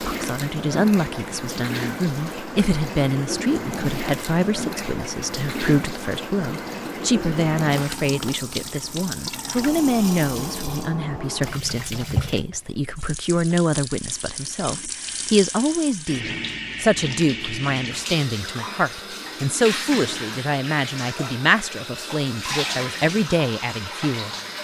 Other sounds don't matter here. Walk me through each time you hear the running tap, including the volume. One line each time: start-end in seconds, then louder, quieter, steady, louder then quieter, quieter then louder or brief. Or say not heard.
0.0-24.5 steady.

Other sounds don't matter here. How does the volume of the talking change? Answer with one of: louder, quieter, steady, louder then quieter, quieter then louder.
steady.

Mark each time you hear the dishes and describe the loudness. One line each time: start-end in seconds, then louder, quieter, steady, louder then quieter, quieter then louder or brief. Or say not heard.
not heard.